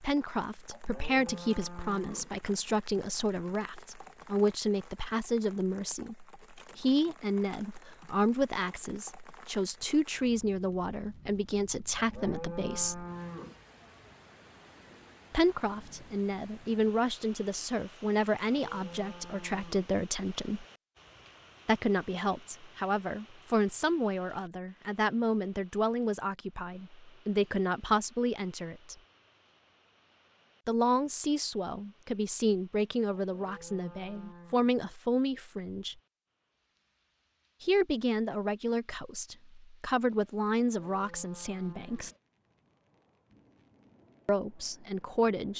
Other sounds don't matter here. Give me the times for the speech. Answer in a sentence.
The speech can be heard from 0.0 to 13.1 s, from 15.3 to 20.6 s, from 21.6 to 28.9 s, from 30.6 to 36.0 s, from 37.6 to 42.1 s and from 44.2 to 45.5 s.